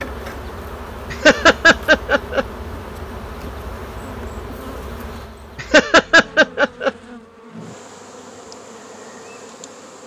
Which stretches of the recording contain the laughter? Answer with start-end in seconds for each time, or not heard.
1.1-2.5, 5.5-6.9.